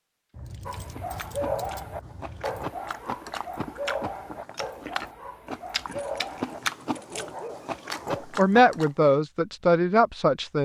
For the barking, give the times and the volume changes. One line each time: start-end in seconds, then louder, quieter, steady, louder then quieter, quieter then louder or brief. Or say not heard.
0.7-8.2 quieter.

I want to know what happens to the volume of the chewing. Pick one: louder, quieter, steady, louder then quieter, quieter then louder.
louder.